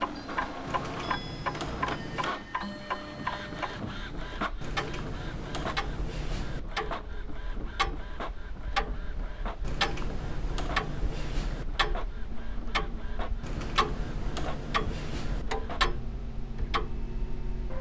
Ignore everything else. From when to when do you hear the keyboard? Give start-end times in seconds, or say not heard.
0.7-2.3, 4.6-6.6, 9.6-11.7, 13.4-15.4.